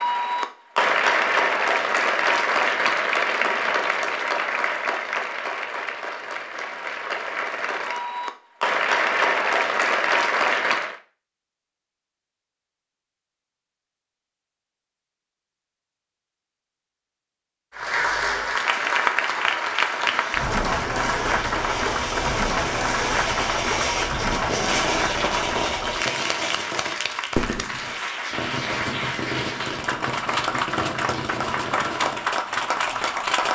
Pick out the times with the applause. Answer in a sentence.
You can hear the applause from 0.0 to 10.9 s and from 17.8 to 33.5 s.